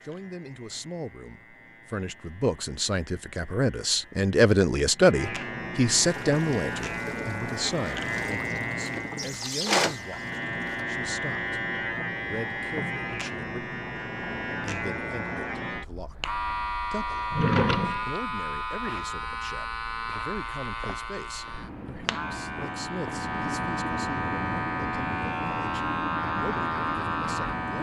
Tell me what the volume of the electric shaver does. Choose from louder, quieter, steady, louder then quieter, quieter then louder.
louder.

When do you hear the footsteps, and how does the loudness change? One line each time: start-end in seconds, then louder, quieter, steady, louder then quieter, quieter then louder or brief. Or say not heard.
not heard.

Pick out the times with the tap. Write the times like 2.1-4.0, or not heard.
6.1-10.8.